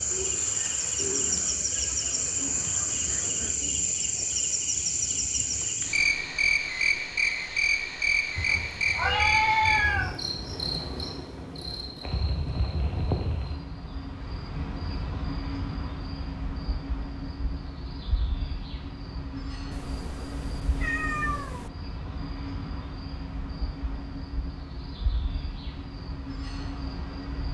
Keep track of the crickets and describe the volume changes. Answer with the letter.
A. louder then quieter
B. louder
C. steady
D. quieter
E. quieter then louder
D.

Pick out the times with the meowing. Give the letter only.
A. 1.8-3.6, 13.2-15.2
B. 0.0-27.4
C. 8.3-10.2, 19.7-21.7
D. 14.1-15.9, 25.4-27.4
C.